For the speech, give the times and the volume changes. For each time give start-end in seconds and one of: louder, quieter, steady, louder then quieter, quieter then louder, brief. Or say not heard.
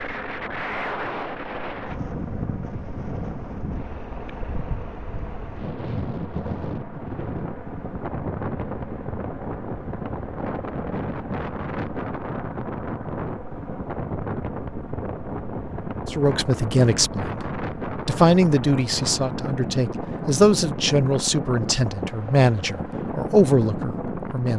16.1-24.5 steady.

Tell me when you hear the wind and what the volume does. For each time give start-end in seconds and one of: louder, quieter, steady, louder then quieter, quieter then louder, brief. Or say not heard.
0.0-24.5 steady.